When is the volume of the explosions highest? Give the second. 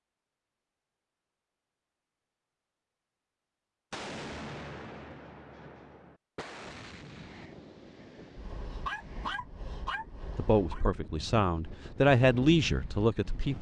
4 s.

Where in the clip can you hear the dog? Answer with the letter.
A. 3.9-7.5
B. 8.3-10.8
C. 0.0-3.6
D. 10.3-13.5
B.